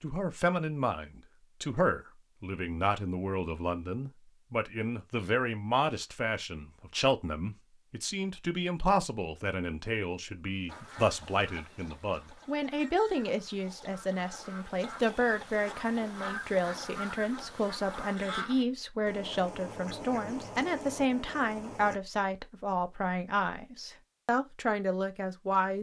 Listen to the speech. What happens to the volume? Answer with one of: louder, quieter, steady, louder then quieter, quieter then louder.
steady.